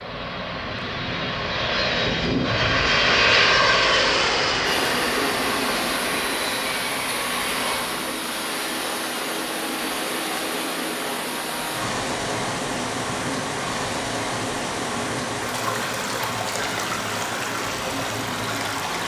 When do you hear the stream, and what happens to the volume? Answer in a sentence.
You can hear the stream from 4.7 to 19.0 s, at a steady volume.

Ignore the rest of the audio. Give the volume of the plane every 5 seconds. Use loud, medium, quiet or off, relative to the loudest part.
loud, medium, quiet, quiet.